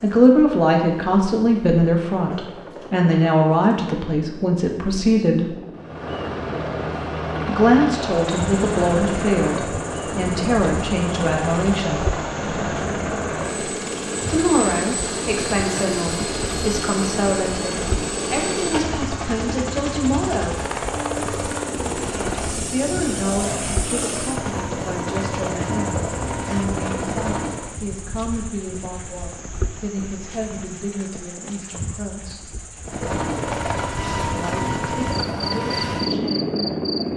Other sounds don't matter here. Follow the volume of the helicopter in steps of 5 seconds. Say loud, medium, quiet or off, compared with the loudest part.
quiet, loud, loud, loud, loud, loud, loud, loud.